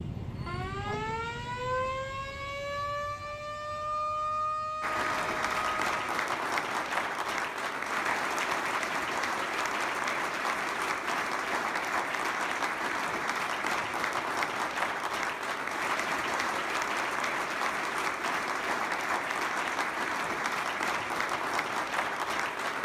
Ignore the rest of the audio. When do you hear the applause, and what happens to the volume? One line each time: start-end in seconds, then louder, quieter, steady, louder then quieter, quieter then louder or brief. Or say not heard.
4.8-22.7 steady.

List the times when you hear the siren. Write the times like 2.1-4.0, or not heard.
0.0-6.0.